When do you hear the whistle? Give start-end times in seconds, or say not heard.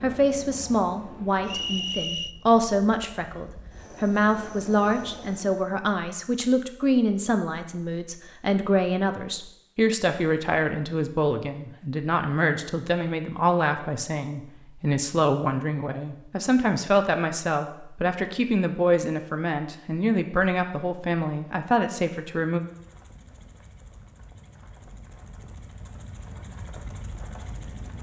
1.4-2.4.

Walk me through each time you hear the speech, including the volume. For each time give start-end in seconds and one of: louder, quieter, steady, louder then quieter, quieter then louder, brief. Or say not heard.
0.0-22.6 steady.